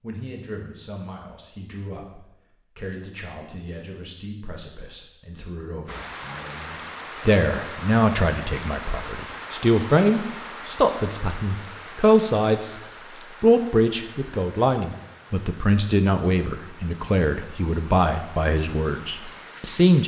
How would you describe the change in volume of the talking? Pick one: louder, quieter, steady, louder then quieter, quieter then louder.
louder.